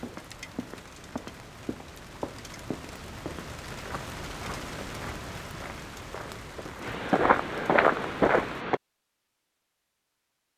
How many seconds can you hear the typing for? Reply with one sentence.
You can't hear the typing here.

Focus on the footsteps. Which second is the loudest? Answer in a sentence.
The loudest moment of the footsteps is at 8 seconds.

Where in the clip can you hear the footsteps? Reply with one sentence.
The footsteps can be heard from 0.0 to 8.8 s.